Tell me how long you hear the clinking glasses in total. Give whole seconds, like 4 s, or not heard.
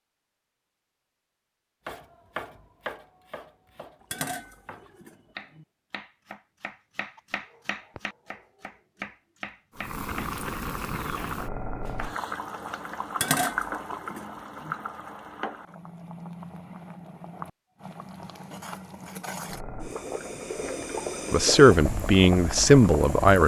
3 s.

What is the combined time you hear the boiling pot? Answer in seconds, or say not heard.
14 s.